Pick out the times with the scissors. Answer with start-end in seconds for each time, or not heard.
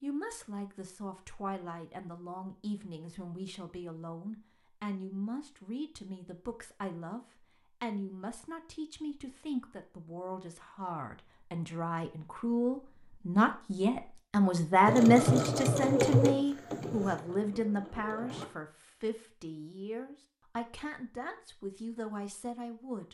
not heard.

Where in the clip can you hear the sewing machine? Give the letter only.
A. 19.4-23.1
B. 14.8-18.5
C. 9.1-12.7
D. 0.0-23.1
B.